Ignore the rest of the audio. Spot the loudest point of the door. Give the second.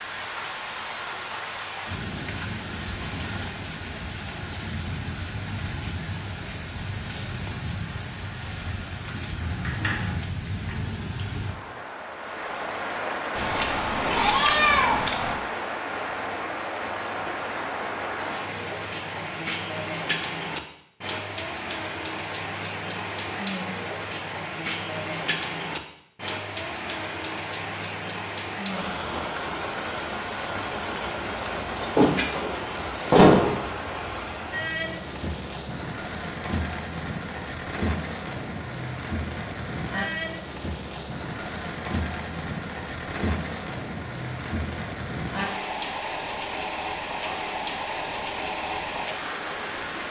33 s.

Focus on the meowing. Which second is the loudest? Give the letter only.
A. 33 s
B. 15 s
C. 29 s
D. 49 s
B.